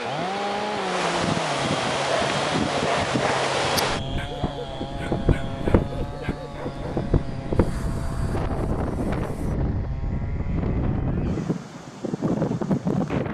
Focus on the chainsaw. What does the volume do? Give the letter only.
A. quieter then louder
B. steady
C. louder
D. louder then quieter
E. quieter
E.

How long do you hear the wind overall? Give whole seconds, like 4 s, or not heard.
13 s.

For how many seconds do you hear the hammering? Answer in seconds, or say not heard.
not heard.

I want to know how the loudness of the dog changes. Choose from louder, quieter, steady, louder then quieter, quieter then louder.
quieter.